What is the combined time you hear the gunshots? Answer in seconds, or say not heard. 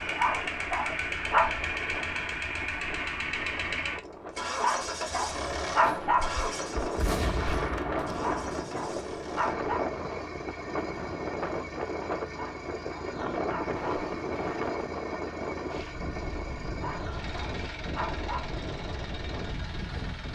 3 s.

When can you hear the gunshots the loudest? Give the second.
7 s.